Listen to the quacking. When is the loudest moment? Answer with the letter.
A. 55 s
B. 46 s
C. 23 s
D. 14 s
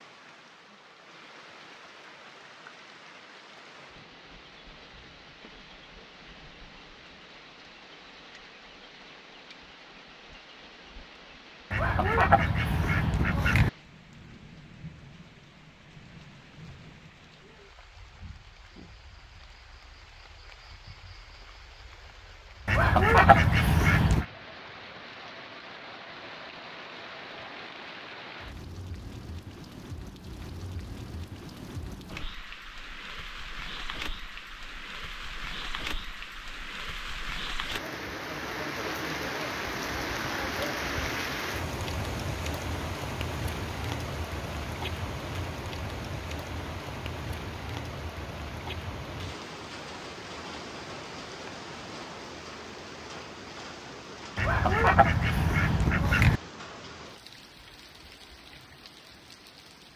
C.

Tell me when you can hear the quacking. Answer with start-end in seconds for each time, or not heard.
11.7-13.7, 22.6-24.2, 54.4-56.4.